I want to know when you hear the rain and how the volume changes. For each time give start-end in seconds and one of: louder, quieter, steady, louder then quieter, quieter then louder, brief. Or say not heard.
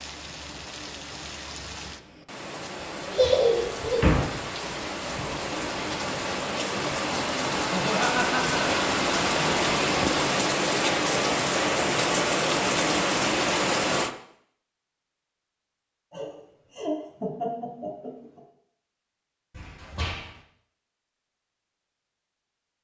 0.0-14.2 louder.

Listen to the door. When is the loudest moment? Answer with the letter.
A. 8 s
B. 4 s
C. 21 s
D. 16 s
B.